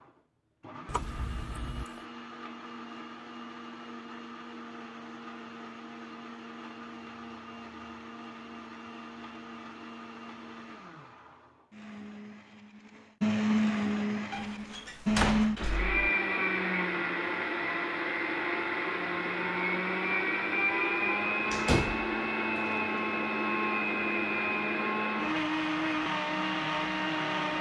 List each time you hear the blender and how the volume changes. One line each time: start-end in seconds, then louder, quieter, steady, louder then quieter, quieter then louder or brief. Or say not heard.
0.0-27.5 louder.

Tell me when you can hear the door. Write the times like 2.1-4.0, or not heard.
0.8-2.0, 14.3-16.0, 21.5-22.6.